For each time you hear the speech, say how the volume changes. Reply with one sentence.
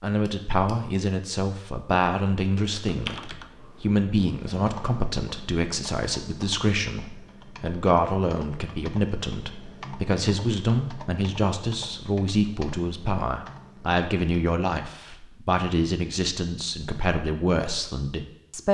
You can hear the speech from 0.0 to 18.6 s, at a steady volume.